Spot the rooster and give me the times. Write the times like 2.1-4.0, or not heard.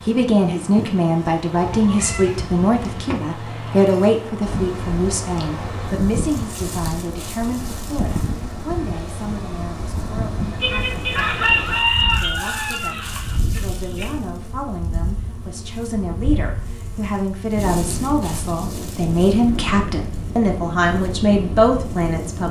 10.6-14.2.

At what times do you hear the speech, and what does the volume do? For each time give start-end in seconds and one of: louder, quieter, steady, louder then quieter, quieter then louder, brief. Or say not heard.
0.1-22.4 quieter then louder.